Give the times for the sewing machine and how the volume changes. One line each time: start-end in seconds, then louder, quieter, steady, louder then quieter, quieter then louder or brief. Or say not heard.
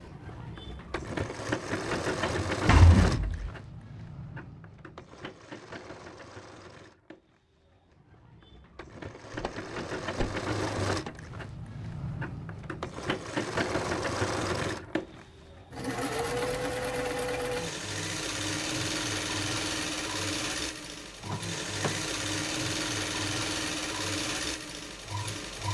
0.0-25.6 quieter then louder.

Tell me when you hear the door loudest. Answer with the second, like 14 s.
3 s.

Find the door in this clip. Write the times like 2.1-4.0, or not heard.
2.2-3.5, 9.3-11.1, 21.2-22.0.